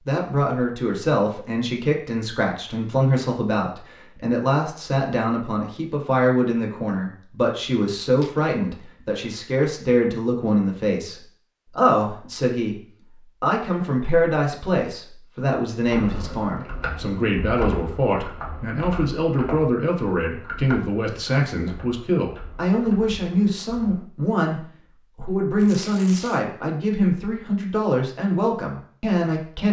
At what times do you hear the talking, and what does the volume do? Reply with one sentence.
The talking can be heard from 0.1 to 29.6 s, at a steady volume.